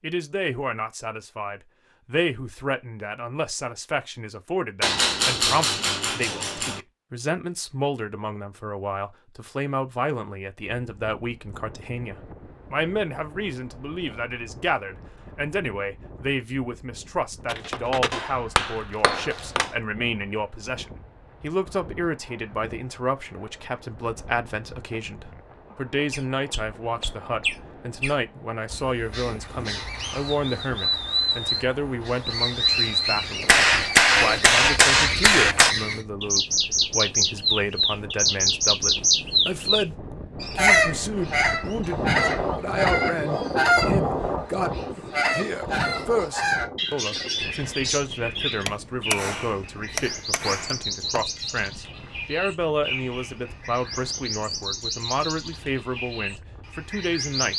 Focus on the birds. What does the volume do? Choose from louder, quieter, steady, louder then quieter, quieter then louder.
louder then quieter.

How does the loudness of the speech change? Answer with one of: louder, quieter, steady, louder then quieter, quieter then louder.
steady.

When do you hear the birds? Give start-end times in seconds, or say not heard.
26.1-57.5.